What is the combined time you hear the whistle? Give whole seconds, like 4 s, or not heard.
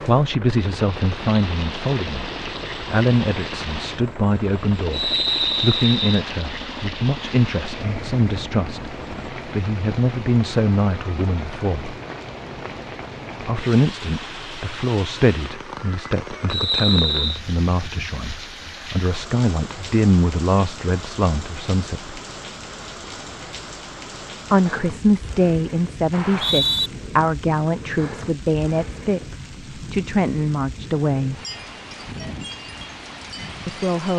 3 s.